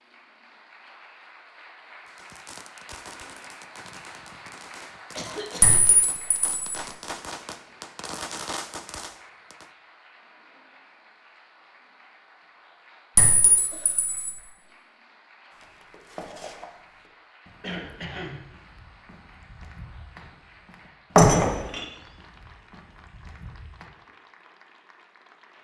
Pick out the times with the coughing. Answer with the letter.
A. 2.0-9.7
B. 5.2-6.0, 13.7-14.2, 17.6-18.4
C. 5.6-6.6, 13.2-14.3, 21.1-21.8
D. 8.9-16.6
B.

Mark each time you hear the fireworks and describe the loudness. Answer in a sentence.
The fireworks can be heard from 2.0 to 9.7 s, getting louder.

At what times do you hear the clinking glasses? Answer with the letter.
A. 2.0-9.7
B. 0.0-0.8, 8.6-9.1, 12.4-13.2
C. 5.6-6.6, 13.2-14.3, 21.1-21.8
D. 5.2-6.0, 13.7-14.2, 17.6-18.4
C.